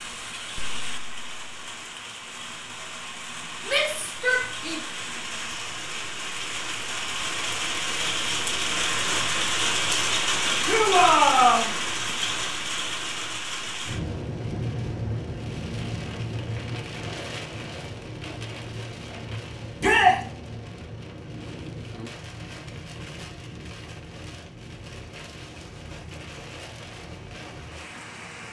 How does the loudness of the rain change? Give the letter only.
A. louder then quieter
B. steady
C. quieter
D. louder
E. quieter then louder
A.